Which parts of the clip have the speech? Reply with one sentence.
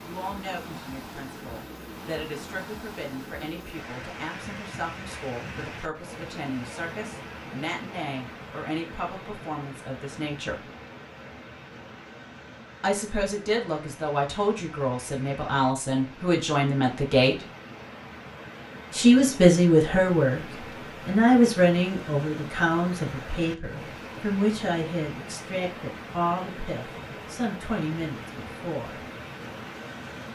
The speech can be heard from 0.0 to 10.7 s, from 12.8 to 17.4 s, from 18.9 to 20.4 s and from 21.1 to 29.1 s.